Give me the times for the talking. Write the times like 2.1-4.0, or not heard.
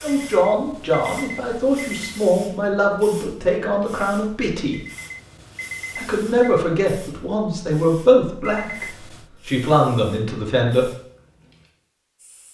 0.0-4.8, 6.0-10.9.